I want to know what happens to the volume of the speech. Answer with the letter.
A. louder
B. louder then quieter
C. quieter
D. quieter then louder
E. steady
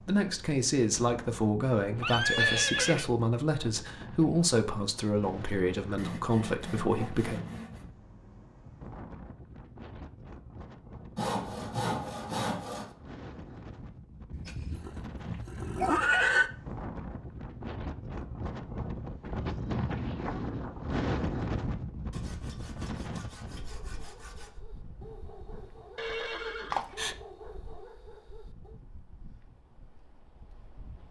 E.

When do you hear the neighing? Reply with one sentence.
You can hear the neighing from 2.0 to 3.1 s, from 14.3 to 16.5 s and from 25.9 to 27.1 s.